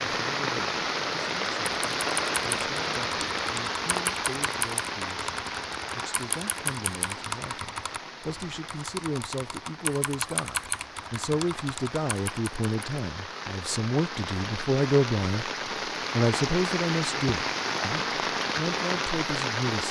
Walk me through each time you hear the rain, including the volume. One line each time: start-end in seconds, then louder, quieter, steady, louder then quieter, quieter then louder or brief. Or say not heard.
0.0-19.8 quieter then louder.